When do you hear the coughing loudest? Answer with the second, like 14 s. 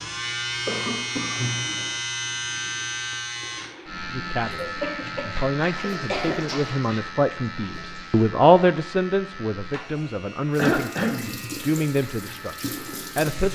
11 s.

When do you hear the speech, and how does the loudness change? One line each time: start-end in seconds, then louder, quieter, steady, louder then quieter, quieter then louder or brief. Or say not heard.
4.1-13.5 louder then quieter.